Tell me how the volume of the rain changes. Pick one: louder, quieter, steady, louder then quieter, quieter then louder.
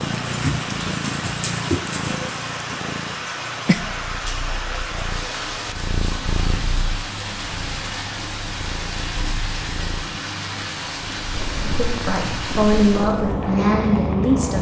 steady.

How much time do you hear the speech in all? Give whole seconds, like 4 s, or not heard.
3 s.